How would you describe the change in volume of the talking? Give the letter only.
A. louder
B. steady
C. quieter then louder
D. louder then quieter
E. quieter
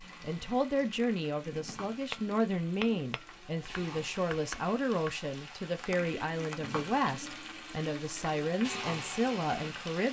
B.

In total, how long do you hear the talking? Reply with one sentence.
The talking can be heard for 10 seconds in total.